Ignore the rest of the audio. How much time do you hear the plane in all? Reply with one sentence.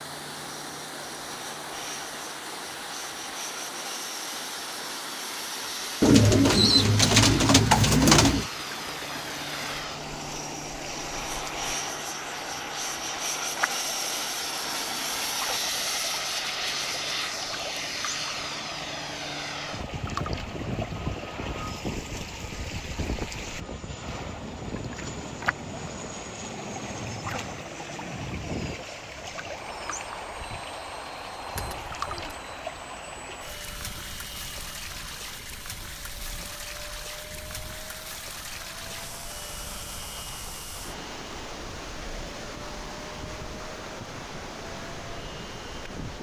The plane can be heard for 46 seconds in total.